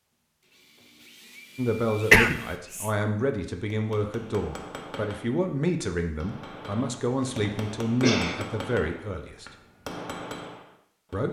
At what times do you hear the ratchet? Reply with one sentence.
The ratchet can't be heard in this clip.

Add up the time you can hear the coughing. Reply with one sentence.
You can hear the coughing for 2 seconds altogether.